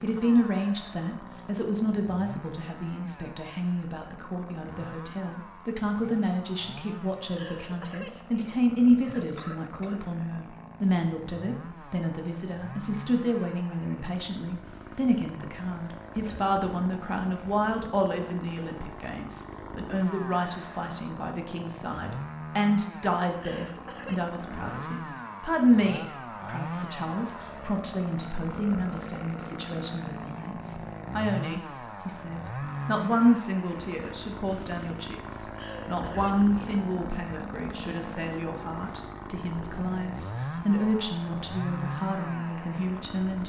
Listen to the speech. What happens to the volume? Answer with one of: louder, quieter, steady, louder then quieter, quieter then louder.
steady.